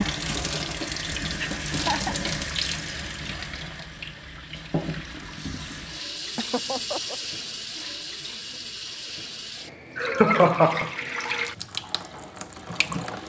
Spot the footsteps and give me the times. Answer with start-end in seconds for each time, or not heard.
not heard.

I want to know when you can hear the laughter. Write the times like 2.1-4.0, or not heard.
1.4-2.1, 6.3-7.2, 9.9-10.9.